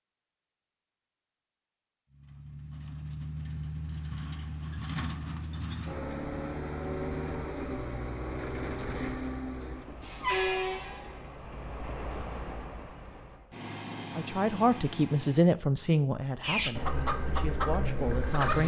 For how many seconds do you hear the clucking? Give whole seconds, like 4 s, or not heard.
2 s.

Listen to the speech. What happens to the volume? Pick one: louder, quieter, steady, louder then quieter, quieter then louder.
quieter then louder.